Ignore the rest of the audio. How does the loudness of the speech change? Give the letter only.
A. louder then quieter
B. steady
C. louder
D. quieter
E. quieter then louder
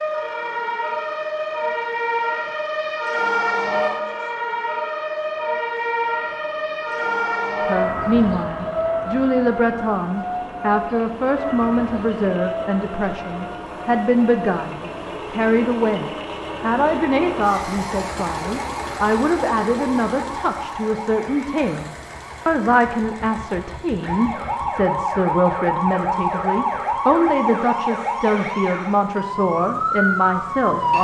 B.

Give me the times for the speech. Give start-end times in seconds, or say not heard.
7.7-30.9.